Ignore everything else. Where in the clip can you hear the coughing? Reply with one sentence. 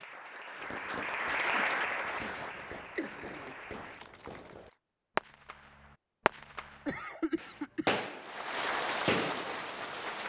The coughing can be heard from 1.3 to 3.5 s and from 6.8 to 8.0 s.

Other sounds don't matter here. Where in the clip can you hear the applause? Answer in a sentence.
The applause can be heard from 0.0 to 4.8 s and from 8.2 to 10.2 s.